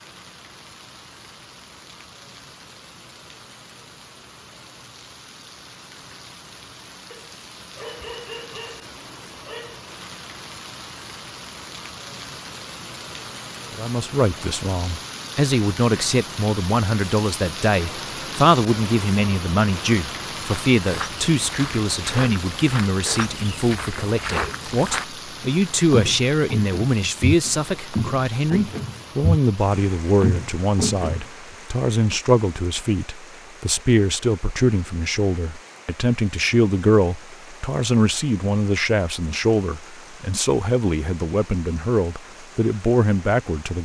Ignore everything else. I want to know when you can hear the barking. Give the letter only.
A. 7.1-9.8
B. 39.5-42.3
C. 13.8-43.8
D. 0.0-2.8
A.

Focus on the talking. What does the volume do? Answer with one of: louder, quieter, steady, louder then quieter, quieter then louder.
steady.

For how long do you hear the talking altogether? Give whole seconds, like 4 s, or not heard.
30 s.